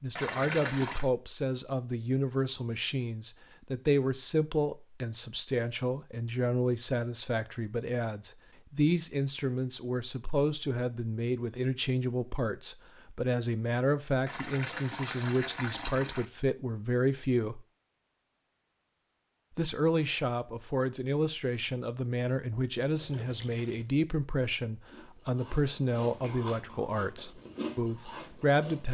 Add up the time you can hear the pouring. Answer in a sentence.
You can hear the pouring for 4 seconds altogether.